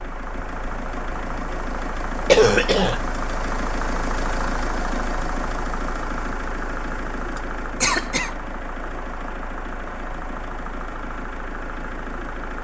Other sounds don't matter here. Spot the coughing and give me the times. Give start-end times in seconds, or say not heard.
2.2-3.0, 7.3-8.3.